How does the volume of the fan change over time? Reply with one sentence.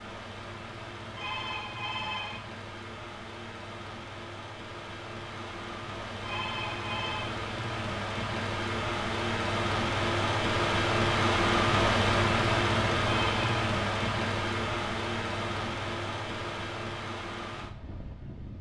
The loudness of the fan goes up, then down.